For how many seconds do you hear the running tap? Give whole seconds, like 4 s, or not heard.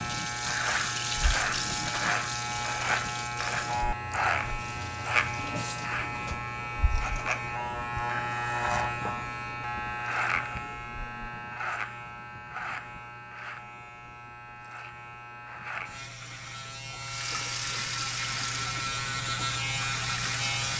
10 s.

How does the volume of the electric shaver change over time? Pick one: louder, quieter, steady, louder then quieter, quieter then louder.
quieter then louder.